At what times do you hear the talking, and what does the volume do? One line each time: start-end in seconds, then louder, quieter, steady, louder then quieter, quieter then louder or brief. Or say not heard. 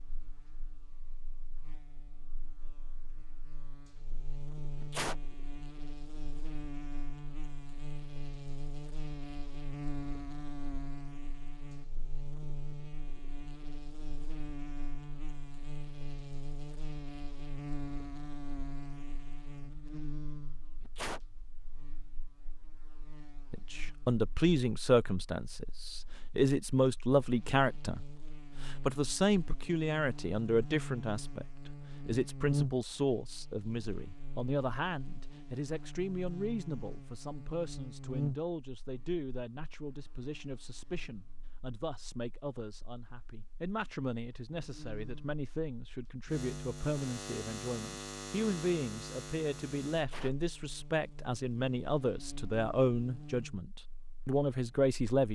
23.5-55.3 quieter then louder.